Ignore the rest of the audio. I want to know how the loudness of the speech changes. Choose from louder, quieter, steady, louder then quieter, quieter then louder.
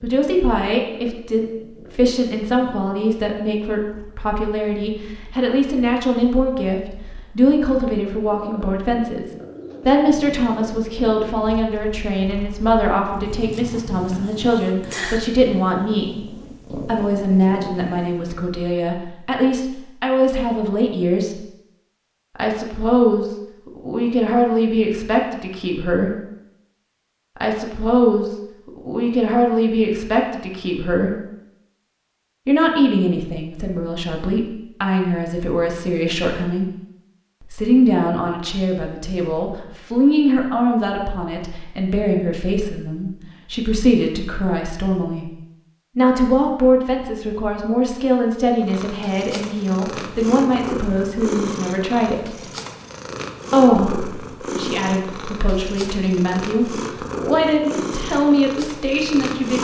steady.